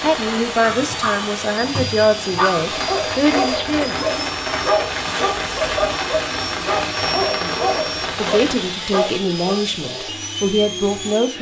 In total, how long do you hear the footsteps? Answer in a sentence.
You can't hear the footsteps here.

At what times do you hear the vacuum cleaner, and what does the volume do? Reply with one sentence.
The vacuum cleaner can be heard from 0.0 to 11.3 s, at a steady volume.